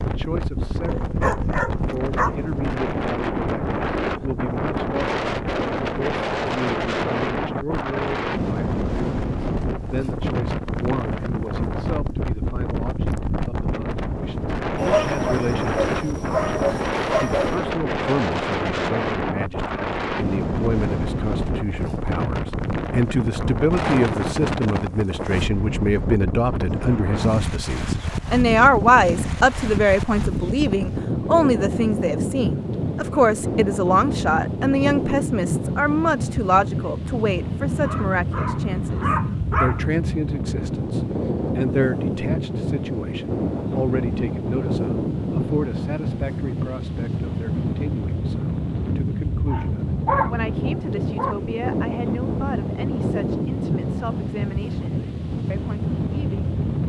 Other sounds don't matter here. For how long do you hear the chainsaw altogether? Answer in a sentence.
The chainsaw can't be heard in this clip.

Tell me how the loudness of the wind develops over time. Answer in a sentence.
The loudness of the wind stays about the same.